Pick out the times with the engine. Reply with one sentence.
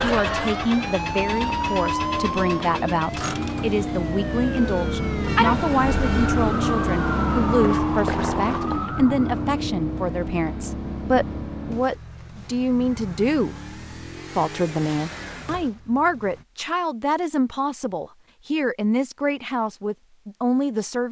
You can hear the engine from 0.2 to 16.4 s.